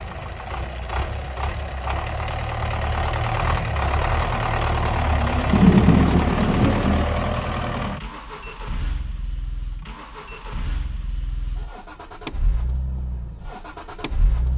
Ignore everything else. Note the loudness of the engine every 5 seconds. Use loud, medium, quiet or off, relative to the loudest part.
loud, loud, medium.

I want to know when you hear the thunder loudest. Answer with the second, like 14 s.
6 s.